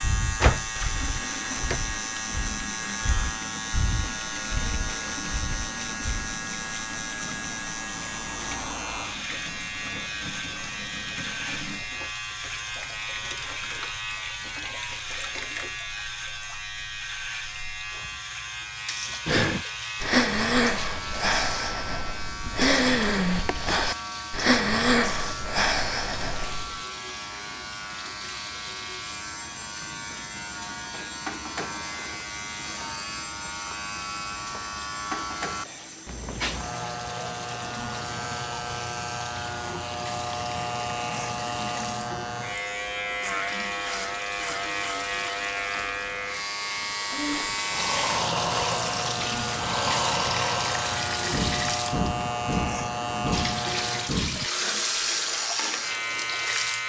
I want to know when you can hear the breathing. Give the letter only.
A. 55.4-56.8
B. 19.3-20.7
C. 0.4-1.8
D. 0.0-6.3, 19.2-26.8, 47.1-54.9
D.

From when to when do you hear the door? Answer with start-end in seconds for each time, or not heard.
0.4-1.8.